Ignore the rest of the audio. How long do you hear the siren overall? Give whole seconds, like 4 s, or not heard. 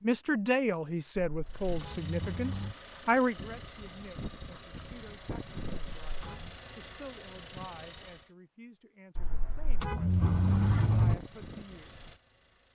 not heard.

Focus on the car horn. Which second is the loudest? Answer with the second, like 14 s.
11 s.